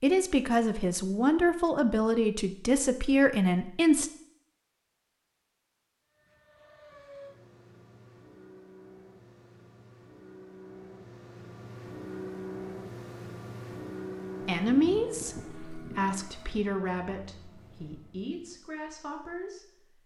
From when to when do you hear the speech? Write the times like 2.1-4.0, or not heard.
0.0-4.1, 14.4-20.0.